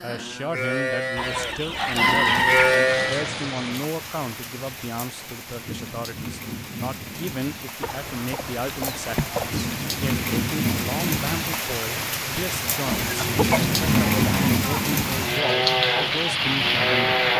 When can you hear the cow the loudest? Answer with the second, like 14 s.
3 s.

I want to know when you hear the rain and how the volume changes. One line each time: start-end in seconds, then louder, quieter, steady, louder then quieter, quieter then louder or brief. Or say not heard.
2.6-17.3 louder.